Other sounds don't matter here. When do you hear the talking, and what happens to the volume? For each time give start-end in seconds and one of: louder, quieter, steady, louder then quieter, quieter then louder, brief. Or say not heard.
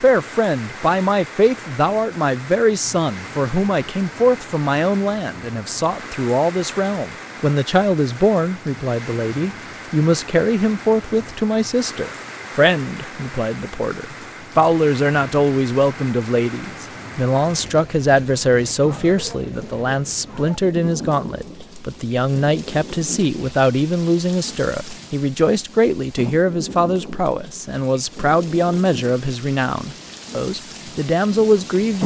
0.0-32.0 steady.